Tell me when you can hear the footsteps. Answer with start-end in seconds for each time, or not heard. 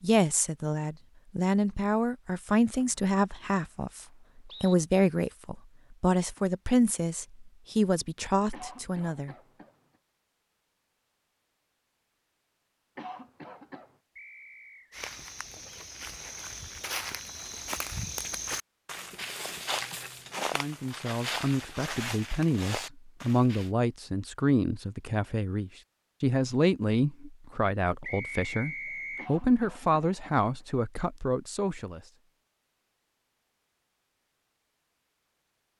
14.9-23.7.